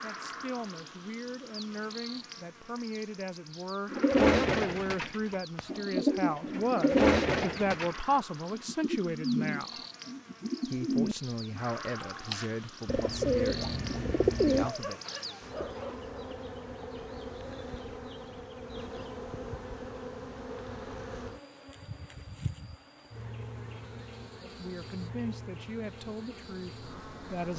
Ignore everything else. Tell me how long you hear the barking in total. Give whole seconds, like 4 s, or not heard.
2 s.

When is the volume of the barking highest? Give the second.
15 s.